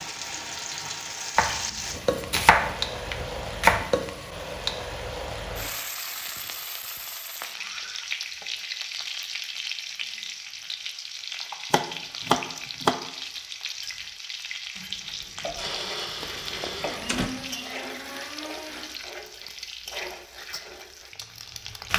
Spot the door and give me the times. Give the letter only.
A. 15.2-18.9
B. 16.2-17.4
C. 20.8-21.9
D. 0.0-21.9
B.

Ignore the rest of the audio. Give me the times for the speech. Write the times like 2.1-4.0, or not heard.
not heard.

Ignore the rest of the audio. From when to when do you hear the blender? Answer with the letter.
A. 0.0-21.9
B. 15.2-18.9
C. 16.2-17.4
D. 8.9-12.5
B.